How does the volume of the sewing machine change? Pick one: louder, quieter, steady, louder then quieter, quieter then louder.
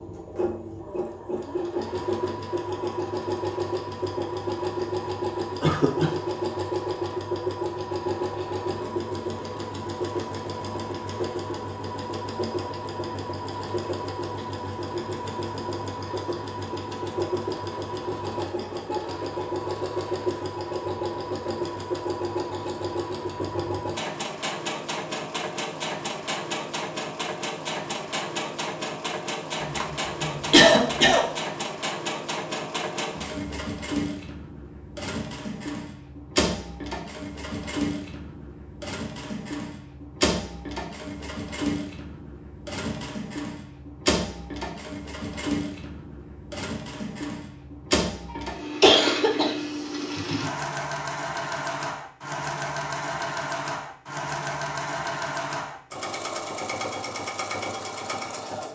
steady.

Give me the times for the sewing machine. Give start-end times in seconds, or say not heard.
0.0-58.6.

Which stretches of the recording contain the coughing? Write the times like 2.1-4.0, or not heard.
5.6-6.2, 29.6-31.2, 48.3-49.5.